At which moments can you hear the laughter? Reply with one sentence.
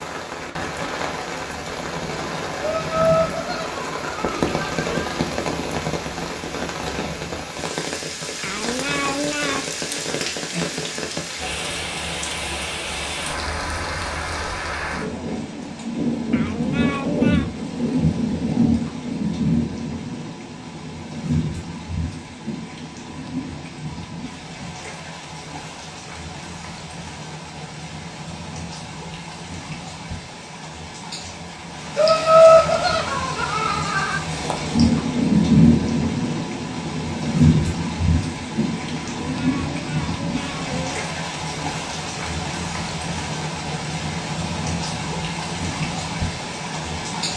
You can hear the laughter from 2.6 to 5.2 s and from 31.9 to 34.2 s.